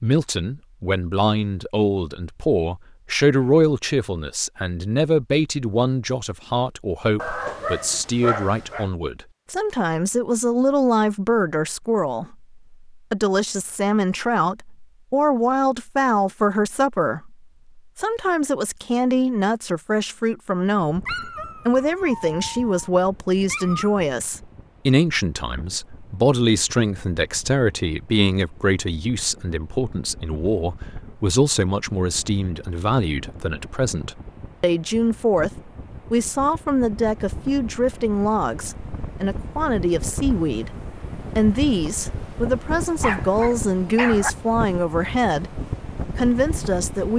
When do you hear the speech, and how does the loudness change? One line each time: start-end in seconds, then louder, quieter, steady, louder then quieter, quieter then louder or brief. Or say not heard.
0.0-47.1 steady.